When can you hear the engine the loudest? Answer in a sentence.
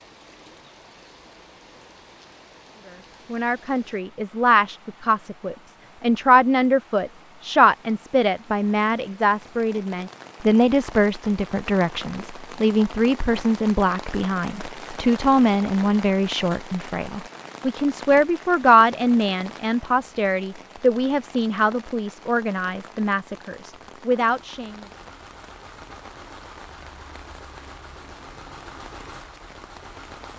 The volume of the engine peaks at 29 seconds.